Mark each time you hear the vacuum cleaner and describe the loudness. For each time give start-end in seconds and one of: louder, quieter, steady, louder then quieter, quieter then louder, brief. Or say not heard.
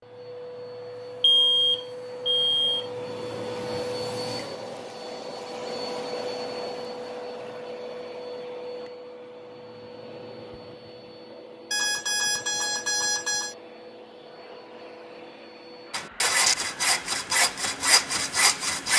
0.0-18.9 quieter.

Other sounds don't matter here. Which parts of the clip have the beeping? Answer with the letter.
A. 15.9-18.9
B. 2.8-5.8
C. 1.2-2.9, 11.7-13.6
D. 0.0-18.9
C.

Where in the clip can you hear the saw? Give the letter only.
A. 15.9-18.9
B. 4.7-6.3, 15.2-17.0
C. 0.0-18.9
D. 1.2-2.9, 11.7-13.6
A.